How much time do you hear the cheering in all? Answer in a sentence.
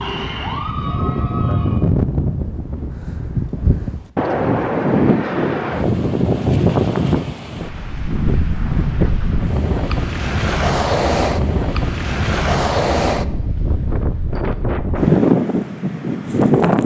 You can hear the cheering for 2 seconds altogether.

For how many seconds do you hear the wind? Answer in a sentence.
You can hear the wind for 17 seconds altogether.